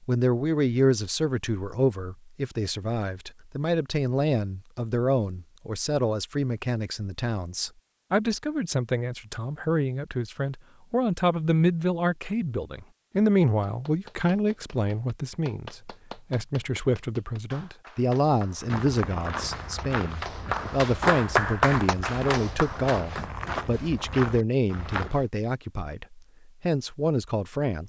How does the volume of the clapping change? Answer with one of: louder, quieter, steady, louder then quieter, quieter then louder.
louder.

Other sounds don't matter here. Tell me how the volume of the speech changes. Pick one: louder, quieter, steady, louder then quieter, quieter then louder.
steady.